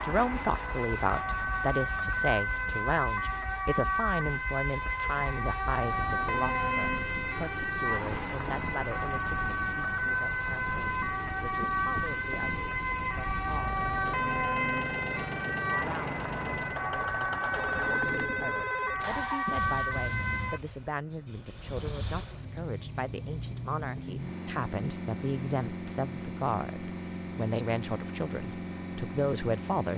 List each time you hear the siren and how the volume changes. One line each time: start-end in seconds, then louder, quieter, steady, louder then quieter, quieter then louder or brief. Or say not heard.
0.0-20.6 steady.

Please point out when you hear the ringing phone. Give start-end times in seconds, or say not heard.
17.5-19.0.